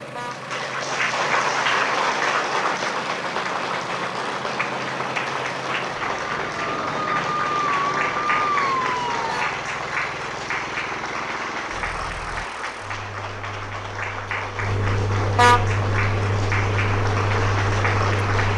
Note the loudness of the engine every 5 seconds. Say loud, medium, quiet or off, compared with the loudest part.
medium, medium, medium, loud.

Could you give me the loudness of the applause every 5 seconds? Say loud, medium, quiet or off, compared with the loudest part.
loud, loud, medium, loud.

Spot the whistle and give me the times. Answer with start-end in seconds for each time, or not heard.
not heard.